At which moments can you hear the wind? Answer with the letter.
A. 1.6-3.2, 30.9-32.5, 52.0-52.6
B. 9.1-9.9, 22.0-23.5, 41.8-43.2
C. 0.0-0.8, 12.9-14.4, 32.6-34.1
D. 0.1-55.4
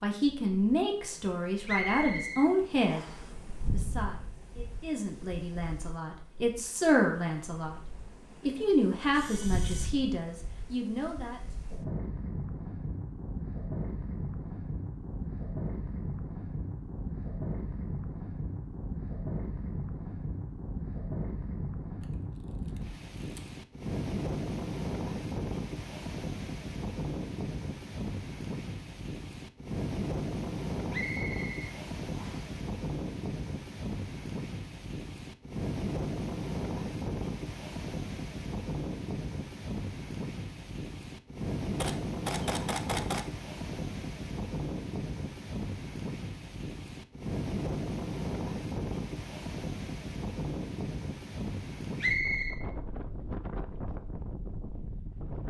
D.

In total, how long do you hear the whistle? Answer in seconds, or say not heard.
4 s.